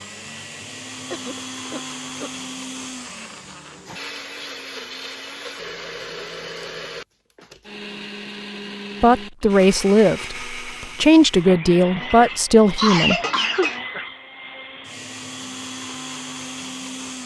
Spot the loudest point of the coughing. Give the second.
13 s.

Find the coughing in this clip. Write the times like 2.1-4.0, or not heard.
1.1-2.4, 11.9-13.8.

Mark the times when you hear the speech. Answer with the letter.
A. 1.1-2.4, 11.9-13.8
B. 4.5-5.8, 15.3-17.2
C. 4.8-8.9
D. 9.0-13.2
D.